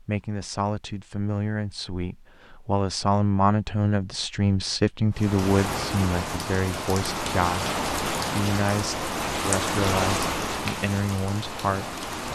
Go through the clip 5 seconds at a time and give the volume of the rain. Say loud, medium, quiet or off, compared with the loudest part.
off, loud, loud.